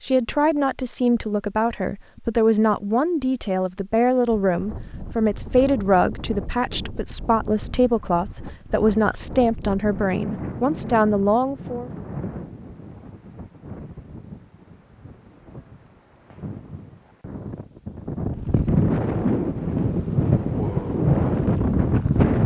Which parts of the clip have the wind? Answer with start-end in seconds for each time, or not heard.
4.2-22.4.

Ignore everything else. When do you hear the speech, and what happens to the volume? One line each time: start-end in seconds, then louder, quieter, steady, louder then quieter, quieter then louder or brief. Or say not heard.
0.0-11.9 steady.